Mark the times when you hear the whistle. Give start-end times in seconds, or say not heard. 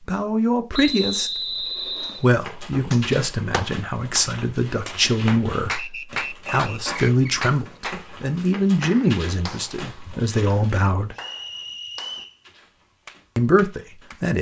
0.7-2.3, 5.8-7.4, 11.2-12.4.